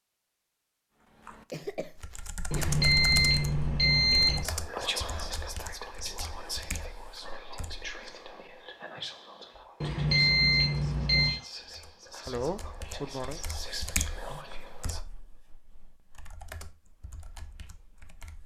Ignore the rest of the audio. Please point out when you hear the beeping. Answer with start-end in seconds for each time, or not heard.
2.5-4.5, 9.8-11.4.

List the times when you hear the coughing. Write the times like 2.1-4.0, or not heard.
1.5-2.7, 12.2-13.4.